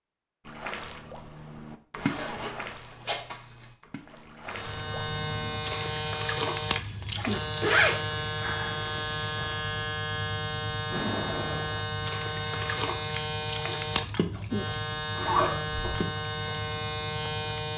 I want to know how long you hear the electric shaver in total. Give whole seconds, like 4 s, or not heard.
13 s.